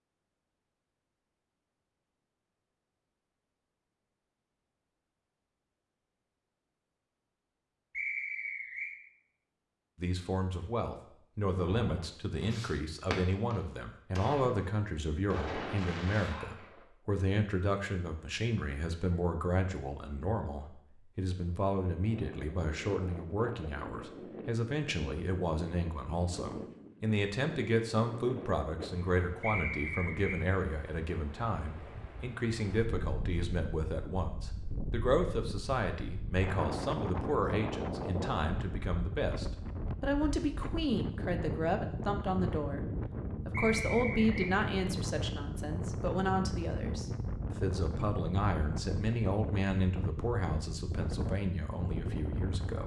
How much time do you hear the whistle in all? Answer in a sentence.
The whistle can be heard for 3 seconds in total.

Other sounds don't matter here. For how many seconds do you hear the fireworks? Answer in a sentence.
The fireworks can be heard for 5 seconds in total.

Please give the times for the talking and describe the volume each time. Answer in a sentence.
You can hear the talking from 9.9 to 52.8 s, at a steady volume.